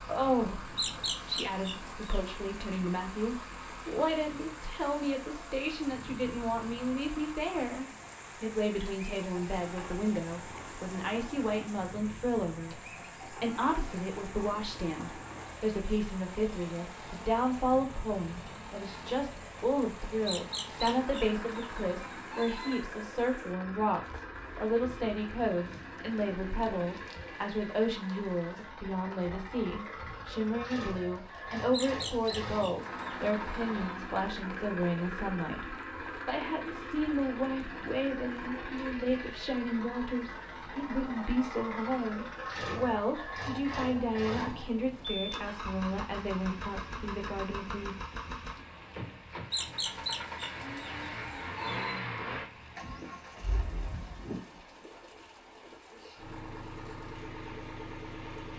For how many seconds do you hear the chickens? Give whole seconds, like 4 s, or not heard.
9 s.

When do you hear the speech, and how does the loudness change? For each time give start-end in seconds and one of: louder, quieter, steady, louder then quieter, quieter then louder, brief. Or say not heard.
0.1-48.0 steady.